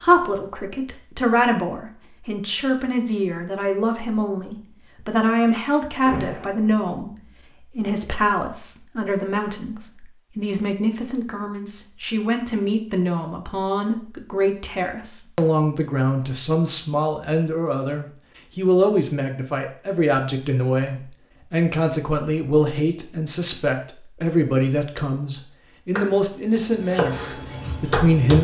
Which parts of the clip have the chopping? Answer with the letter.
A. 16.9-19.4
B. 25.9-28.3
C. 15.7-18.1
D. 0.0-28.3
B.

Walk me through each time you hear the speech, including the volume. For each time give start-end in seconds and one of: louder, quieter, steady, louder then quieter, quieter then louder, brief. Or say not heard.
0.0-28.3 steady.